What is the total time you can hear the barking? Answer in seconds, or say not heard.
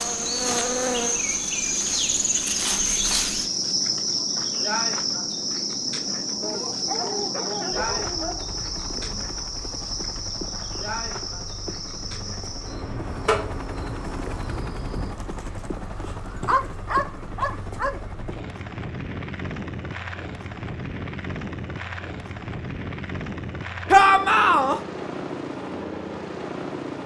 4 s.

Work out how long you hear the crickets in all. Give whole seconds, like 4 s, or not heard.
15 s.